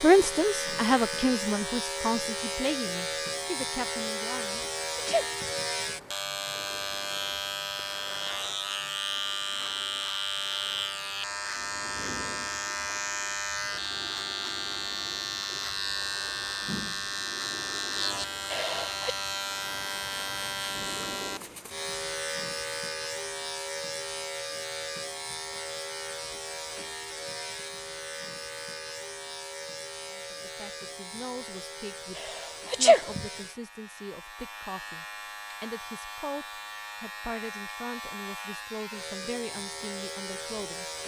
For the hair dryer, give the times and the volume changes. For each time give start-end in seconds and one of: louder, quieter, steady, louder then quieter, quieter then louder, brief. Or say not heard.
not heard.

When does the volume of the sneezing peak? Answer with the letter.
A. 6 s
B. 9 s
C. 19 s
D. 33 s
D.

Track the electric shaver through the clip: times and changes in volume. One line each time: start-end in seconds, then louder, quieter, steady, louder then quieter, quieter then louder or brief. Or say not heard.
0.0-41.0 quieter.